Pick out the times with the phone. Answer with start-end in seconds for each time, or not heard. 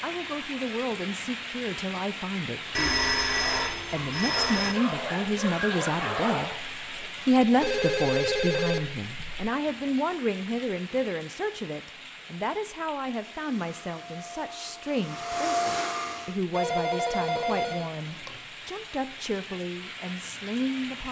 2.8-4.8, 7.6-9.4, 16.5-18.4.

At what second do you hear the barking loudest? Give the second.
6 s.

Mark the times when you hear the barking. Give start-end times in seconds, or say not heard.
3.4-6.6.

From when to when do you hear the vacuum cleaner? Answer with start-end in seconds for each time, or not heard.
13.1-16.4.